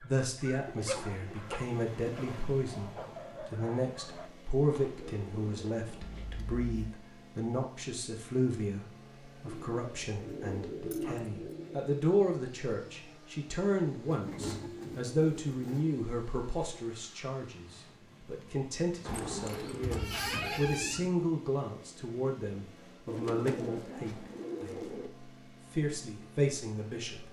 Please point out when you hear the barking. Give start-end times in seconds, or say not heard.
0.0-4.3.